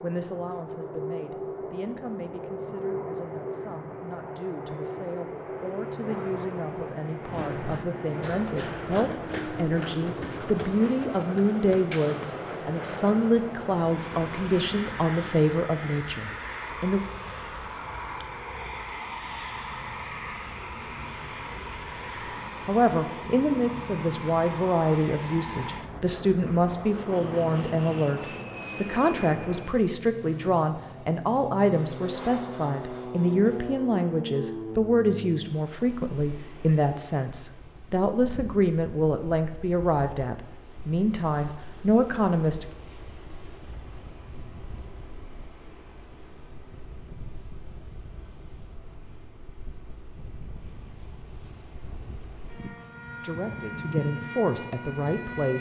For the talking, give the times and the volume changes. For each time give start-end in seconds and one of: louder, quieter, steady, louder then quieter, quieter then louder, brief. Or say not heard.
0.0-17.0 louder
22.6-42.7 steady
53.2-55.5 brief.